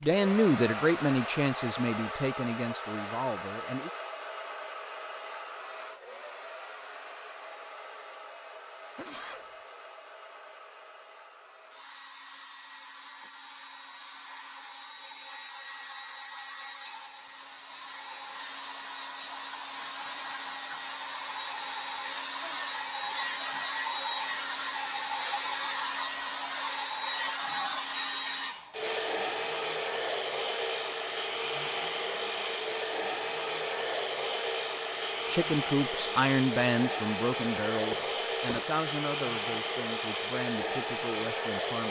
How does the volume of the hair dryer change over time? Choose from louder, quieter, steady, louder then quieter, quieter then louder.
quieter then louder.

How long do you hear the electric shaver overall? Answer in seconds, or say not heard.
not heard.